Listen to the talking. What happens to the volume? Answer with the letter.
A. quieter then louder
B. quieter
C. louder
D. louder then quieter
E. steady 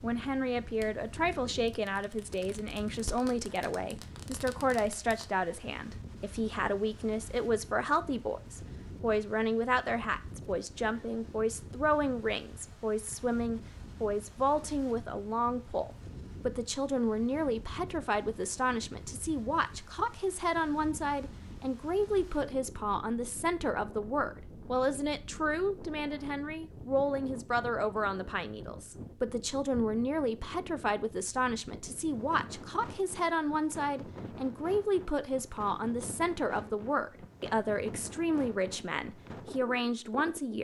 E.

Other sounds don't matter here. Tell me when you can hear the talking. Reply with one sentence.
The talking can be heard from 0.0 to 40.5 s.